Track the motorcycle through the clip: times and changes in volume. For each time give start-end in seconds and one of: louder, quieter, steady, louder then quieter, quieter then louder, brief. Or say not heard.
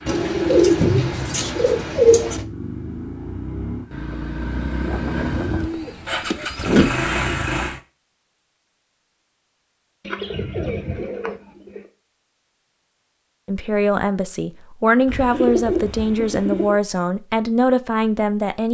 0.0-7.8 louder.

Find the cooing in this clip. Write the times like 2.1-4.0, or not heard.
0.1-2.5, 5.4-6.9, 10.1-11.8, 15.1-16.8.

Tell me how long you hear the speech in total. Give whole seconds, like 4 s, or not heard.
5 s.